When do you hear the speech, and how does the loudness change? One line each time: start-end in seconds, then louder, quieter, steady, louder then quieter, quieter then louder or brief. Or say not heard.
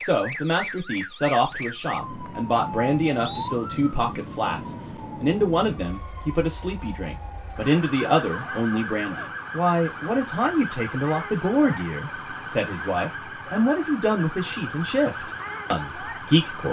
0.0-16.6 steady.